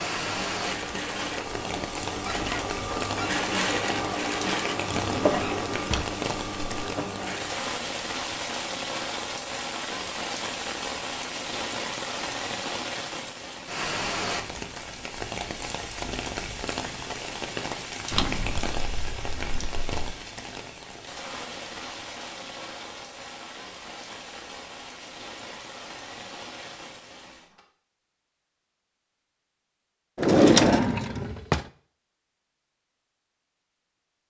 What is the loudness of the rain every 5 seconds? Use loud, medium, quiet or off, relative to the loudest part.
loud, loud, loud, loud, medium, medium, off.